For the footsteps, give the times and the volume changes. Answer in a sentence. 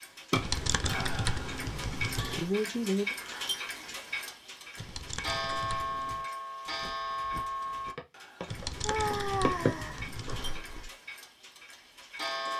The footsteps can be heard from 6.7 to 10.9 s, getting louder then quieter.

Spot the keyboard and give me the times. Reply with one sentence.
You can hear the keyboard from 0.3 to 2.5 s, from 4.8 to 6.2 s and from 8.4 to 10.7 s.